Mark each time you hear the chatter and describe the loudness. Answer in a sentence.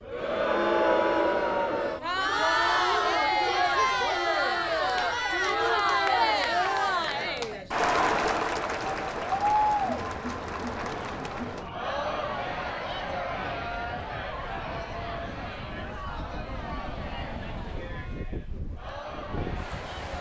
You can hear the chatter from 0.0 to 20.1 s, getting quieter.